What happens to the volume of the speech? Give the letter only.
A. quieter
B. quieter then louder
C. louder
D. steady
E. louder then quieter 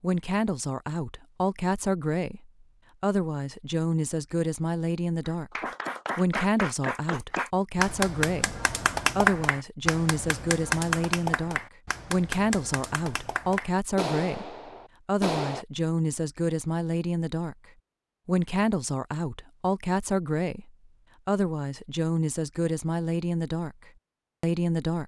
D.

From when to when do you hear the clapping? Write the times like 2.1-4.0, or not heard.
5.2-15.7.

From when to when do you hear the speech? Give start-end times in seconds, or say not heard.
0.0-5.5, 6.2-17.6, 18.2-25.0.